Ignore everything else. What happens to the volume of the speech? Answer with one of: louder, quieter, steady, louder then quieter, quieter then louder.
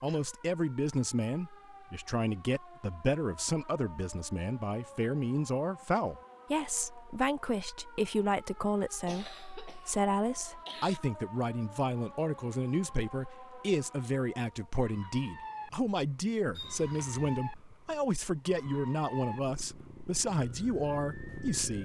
steady.